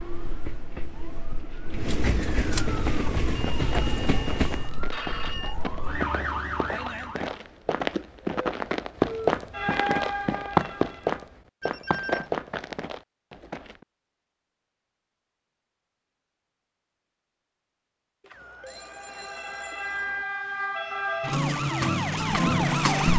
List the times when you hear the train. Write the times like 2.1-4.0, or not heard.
0.0-4.8.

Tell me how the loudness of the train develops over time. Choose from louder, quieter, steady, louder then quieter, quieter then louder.
louder.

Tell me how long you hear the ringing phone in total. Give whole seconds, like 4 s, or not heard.
5 s.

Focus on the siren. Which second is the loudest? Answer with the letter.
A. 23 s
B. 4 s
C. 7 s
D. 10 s
A.